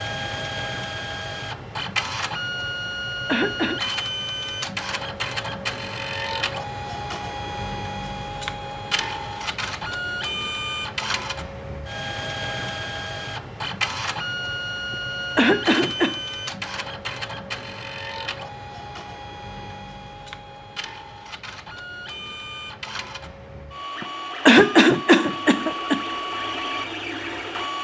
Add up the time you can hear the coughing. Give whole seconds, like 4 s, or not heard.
4 s.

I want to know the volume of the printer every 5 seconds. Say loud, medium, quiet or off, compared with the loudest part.
loud, loud, loud, loud, medium, loud.